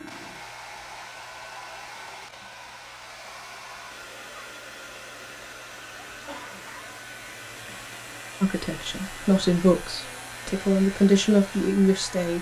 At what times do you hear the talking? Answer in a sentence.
You can hear the talking from 8.4 to 12.3 s.